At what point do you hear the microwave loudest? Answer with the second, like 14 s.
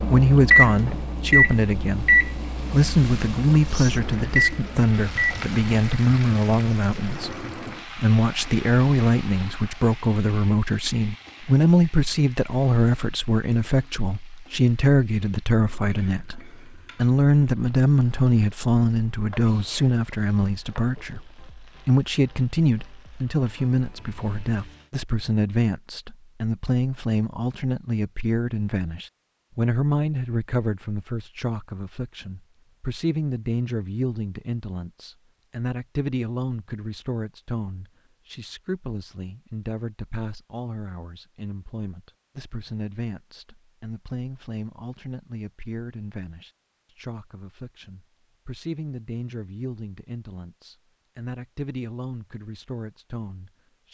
1 s.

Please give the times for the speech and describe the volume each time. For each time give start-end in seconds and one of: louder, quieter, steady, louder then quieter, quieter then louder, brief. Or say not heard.
0.1-53.8 quieter.